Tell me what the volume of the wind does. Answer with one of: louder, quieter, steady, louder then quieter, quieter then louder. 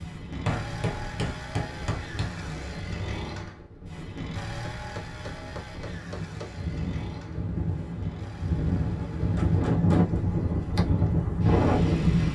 louder.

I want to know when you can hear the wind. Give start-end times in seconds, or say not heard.
0.0-12.3.